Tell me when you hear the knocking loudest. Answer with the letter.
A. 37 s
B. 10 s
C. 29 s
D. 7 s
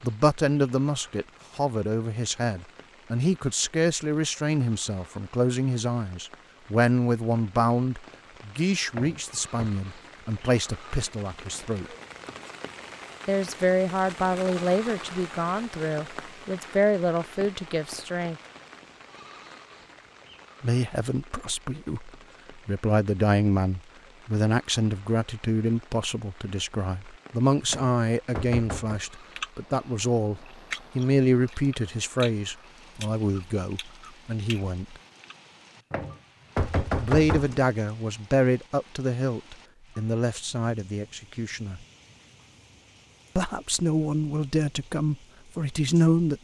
A.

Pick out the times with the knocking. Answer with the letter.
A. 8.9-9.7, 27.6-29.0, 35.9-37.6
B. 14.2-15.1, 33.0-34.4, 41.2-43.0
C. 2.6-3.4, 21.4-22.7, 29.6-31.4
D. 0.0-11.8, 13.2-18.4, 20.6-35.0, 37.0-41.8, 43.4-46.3
A.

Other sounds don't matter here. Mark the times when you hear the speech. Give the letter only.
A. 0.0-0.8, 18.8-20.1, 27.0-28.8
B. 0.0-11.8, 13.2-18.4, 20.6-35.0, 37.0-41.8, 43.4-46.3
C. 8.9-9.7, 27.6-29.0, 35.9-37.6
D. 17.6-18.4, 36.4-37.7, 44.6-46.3
B.